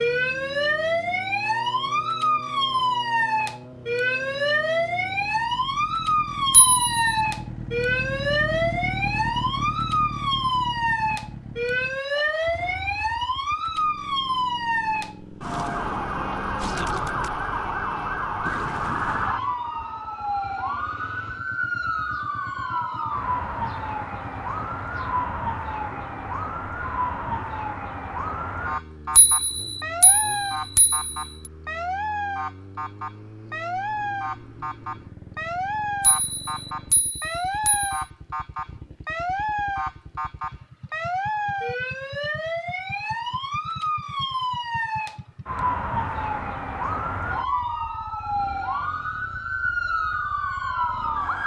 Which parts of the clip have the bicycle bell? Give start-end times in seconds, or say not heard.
6.5-7.0, 29.1-31.2, 36.0-38.0.